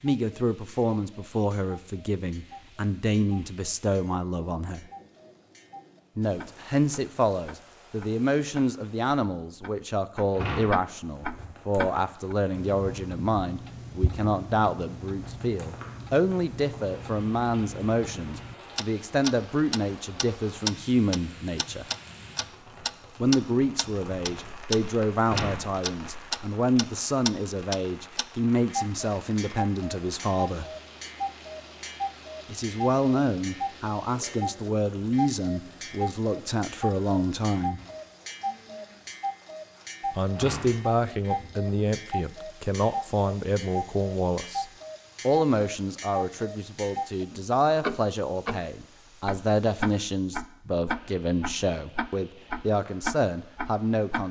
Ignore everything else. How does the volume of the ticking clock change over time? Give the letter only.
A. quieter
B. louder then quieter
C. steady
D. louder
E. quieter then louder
D.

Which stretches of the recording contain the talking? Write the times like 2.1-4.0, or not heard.
0.0-4.8, 6.2-21.9, 23.2-30.6, 32.5-37.8, 40.1-44.6, 45.2-54.2.